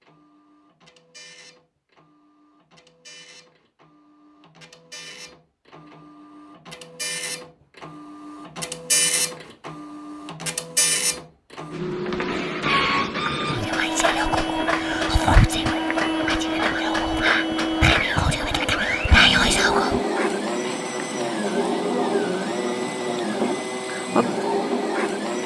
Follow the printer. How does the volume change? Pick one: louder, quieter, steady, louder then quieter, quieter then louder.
louder.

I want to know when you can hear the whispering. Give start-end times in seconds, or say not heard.
13.5-20.0.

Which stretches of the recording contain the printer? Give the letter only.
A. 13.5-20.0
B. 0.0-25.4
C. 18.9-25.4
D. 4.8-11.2
B.